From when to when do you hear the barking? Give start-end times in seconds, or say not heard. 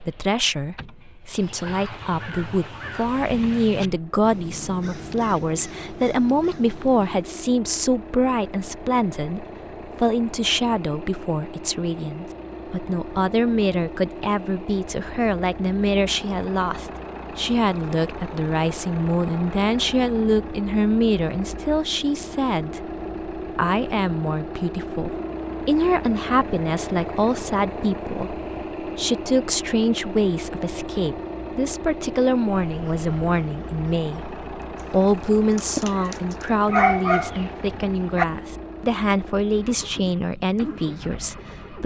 36.6-38.2.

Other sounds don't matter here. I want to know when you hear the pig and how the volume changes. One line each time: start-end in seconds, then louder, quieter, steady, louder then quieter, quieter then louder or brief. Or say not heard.
not heard.